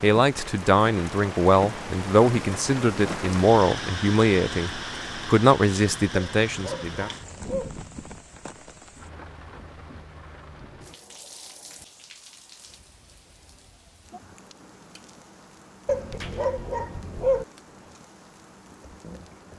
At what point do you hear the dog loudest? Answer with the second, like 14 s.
17 s.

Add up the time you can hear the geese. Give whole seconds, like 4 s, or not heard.
not heard.